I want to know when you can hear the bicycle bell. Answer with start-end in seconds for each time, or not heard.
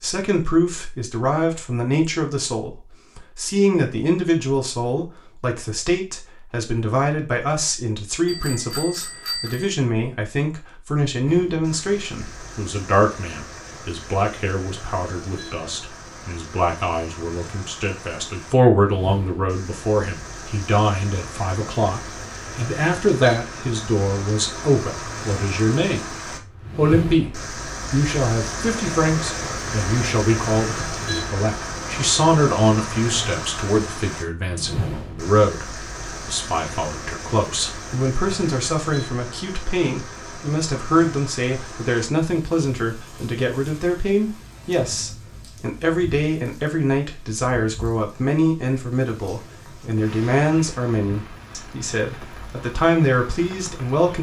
8.2-9.8.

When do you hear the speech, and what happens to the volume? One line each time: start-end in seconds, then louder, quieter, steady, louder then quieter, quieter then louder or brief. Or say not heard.
0.0-26.1 steady
26.8-27.3 brief
27.9-54.1 steady.